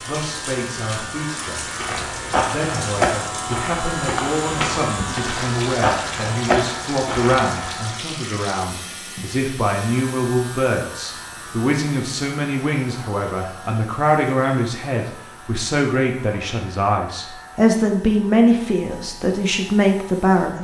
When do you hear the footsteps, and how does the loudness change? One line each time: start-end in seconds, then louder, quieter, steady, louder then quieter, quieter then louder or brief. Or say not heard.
1.8-7.5 quieter then louder.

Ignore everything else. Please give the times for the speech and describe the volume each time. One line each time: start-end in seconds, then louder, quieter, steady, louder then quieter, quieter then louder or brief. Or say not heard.
0.1-1.6 brief
2.5-20.6 louder.